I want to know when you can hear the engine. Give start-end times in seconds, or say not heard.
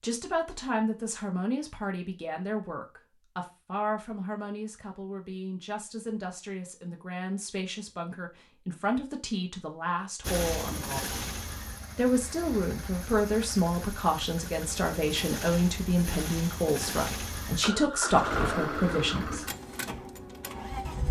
10.2-21.0.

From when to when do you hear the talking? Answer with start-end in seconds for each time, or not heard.
0.0-11.2, 11.9-19.4.